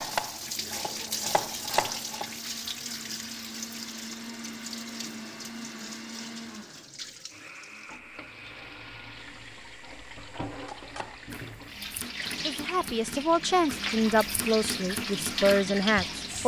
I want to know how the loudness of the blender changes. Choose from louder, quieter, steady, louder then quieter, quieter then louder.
louder then quieter.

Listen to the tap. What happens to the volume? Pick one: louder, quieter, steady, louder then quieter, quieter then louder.
quieter then louder.